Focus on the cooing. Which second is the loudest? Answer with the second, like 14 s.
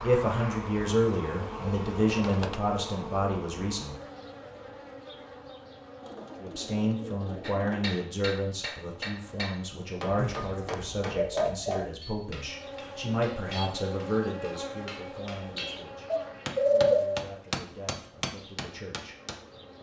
17 s.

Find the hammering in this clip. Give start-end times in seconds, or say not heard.
7.4-19.4.